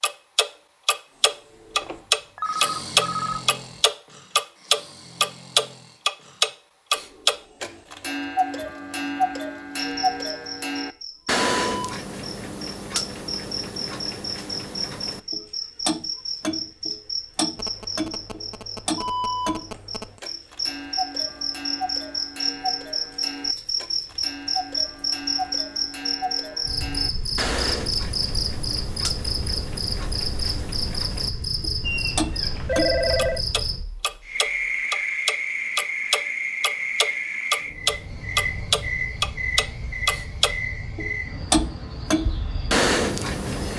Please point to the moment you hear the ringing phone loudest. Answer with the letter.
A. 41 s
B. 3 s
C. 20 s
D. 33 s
D.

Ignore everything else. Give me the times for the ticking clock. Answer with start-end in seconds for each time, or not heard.
0.0-43.7.